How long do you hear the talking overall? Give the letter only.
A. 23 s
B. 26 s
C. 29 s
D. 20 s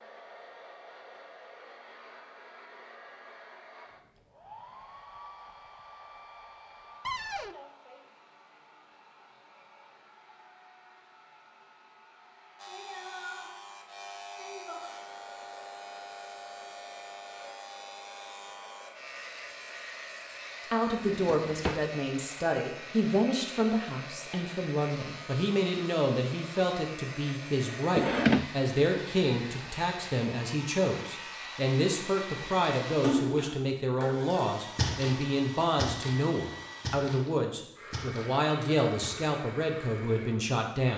D.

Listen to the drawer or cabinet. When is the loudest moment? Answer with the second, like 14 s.
28 s.